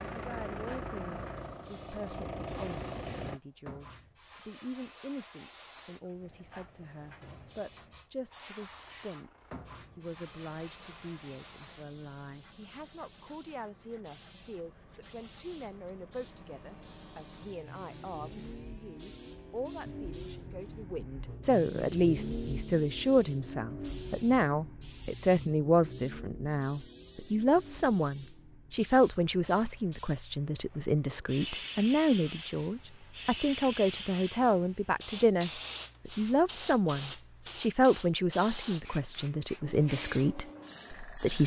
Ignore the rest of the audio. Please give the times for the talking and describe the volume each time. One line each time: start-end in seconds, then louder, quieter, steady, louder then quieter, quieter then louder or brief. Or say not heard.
0.1-41.4 louder.